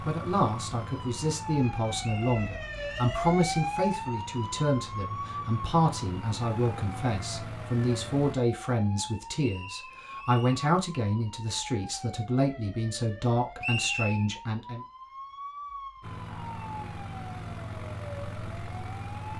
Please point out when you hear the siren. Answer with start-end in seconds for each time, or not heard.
0.1-19.3.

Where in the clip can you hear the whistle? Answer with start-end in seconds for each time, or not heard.
2.0-3.0, 9.3-10.7, 13.6-14.2.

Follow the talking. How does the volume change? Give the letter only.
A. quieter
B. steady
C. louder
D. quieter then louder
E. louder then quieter
B.